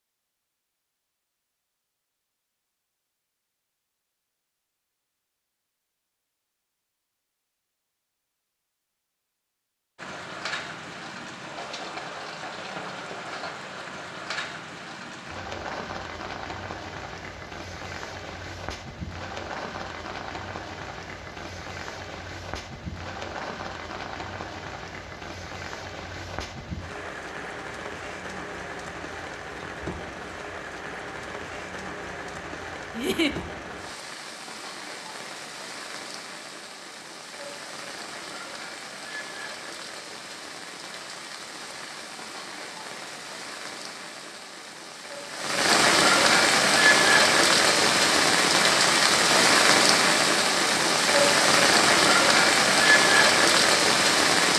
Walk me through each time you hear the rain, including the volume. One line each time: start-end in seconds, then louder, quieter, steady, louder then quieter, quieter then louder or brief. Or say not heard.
9.9-54.5 louder.